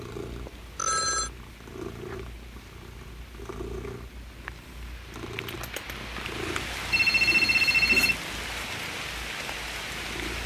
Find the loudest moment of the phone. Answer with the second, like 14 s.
8 s.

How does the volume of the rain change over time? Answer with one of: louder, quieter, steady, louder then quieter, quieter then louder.
louder.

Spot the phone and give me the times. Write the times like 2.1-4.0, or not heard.
0.2-1.3, 6.9-8.3.